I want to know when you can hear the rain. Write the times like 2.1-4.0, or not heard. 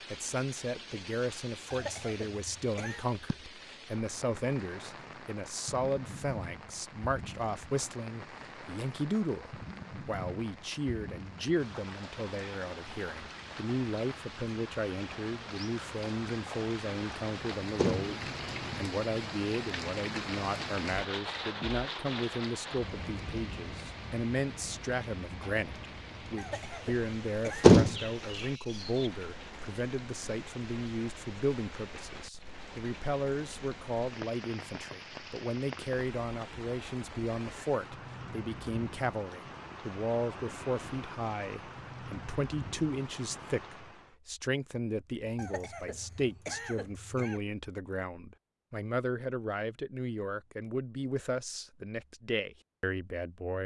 0.0-44.1.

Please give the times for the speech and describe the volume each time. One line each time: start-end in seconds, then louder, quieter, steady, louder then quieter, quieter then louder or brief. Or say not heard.
0.1-53.6 steady.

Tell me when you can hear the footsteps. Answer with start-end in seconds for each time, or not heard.
not heard.